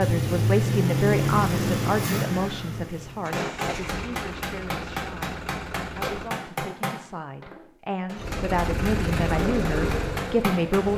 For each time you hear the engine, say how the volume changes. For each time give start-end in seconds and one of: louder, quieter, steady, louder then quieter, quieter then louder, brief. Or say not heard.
0.0-6.3 quieter
8.2-10.9 brief.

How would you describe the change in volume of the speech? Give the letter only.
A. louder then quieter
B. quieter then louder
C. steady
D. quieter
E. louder
B.